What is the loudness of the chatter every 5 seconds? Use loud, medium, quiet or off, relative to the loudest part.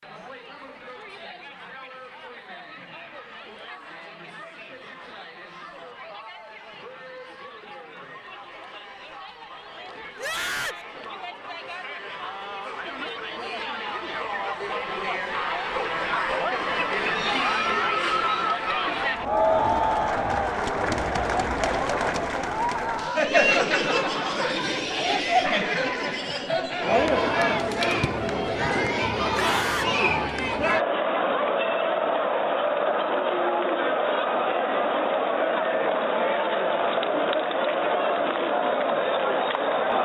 quiet, quiet, medium, loud, loud, loud, loud, loud.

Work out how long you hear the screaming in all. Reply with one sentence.
You can hear the screaming for 2 seconds altogether.